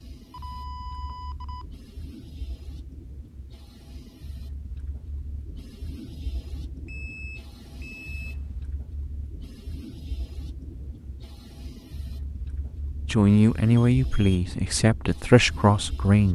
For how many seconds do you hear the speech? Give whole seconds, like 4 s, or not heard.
3 s.